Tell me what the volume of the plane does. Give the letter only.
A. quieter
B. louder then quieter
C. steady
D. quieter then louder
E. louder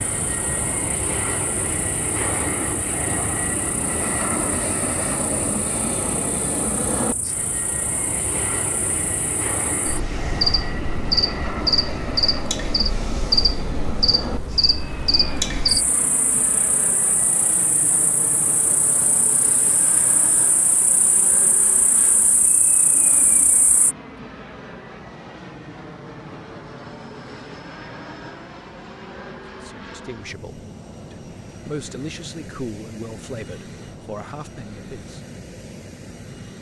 A.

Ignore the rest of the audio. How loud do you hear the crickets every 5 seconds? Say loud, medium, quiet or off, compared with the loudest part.
quiet, quiet, loud, medium, medium, off, off, off.